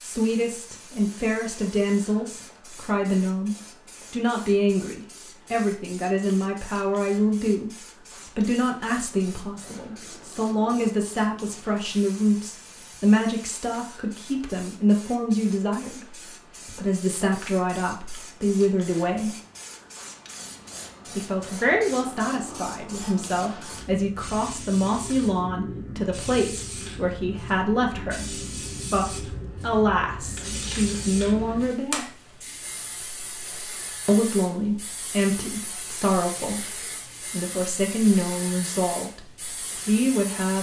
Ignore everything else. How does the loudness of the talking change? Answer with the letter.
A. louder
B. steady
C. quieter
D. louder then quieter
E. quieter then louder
B.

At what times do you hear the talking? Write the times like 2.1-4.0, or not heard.
0.0-19.4, 21.1-32.1, 34.0-40.5.